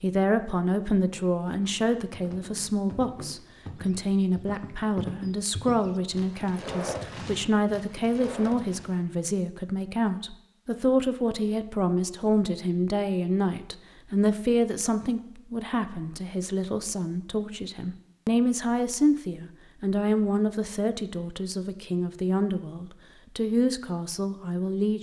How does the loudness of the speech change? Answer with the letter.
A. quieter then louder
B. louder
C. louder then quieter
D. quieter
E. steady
E.